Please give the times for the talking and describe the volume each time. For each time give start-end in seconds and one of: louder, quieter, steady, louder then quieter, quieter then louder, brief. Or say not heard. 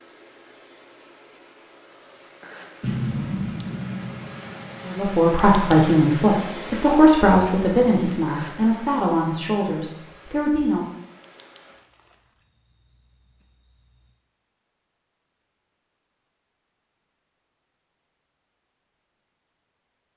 4.8-10.9 quieter.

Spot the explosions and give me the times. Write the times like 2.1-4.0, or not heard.
2.8-5.2.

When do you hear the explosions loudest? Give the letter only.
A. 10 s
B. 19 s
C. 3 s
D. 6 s
C.